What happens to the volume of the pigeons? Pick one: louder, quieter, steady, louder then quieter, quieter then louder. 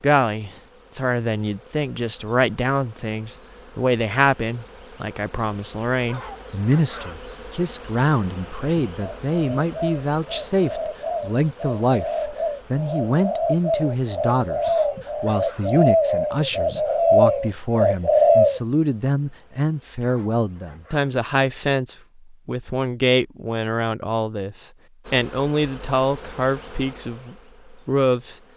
louder.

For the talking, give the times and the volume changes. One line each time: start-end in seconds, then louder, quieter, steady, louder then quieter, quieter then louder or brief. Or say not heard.
0.0-28.4 steady.